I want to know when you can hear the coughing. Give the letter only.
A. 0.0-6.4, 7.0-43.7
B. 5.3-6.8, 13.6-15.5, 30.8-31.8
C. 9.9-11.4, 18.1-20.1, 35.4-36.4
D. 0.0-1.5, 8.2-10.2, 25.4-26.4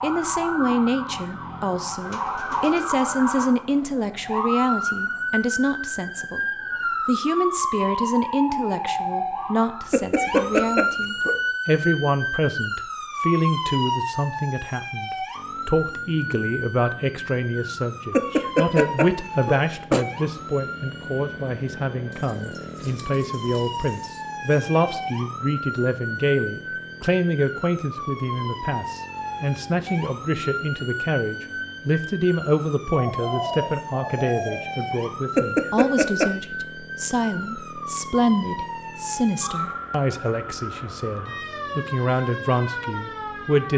C.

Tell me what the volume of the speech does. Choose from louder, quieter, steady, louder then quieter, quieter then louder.
steady.